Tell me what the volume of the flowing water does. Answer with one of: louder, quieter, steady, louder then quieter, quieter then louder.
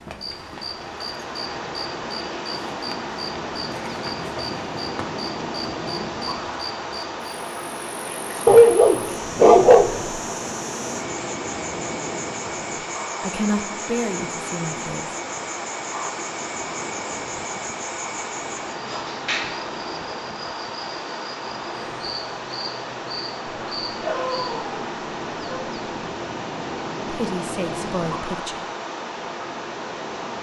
steady.